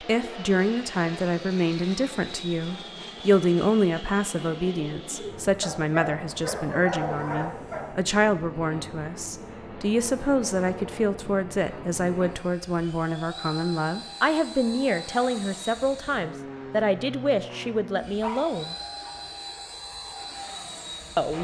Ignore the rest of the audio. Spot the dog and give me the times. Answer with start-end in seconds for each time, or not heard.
5.6-7.9, 17.4-19.1.